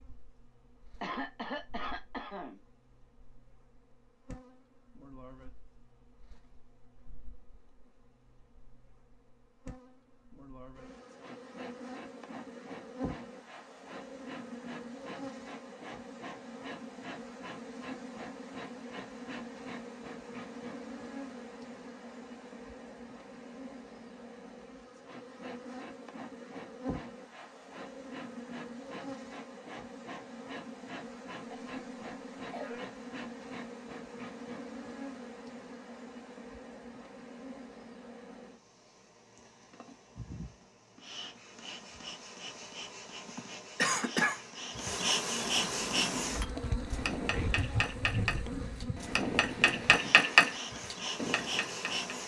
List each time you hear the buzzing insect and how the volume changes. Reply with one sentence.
You can hear the buzzing insect from 0.0 to 52.2 s, getting louder.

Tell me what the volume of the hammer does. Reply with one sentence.
The volume of the hammer goes up, then down.